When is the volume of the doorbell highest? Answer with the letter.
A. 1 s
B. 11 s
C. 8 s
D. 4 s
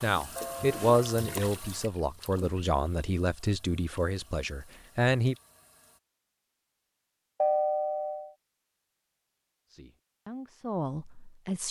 C.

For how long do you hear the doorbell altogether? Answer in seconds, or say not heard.
2 s.